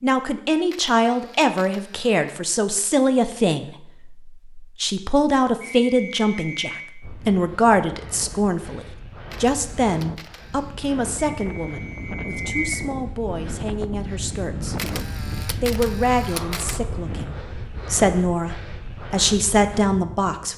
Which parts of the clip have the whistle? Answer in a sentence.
The whistle can be heard from 5.6 to 6.8 s and from 11.3 to 12.8 s.